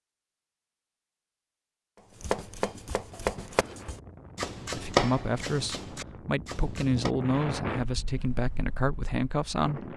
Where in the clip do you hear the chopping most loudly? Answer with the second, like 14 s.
5 s.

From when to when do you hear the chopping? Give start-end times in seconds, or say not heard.
1.9-7.2.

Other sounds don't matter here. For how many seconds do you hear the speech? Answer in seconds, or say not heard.
5 s.